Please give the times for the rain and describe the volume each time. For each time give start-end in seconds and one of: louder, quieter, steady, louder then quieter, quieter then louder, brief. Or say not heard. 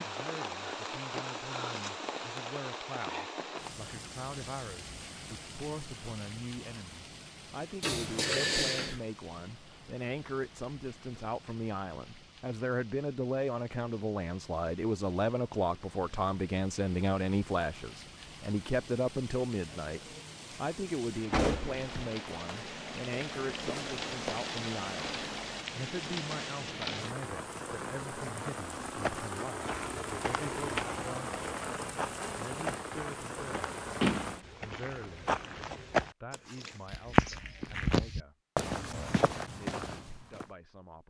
0.0-34.5 quieter then louder.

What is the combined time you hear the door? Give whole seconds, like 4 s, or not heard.
3 s.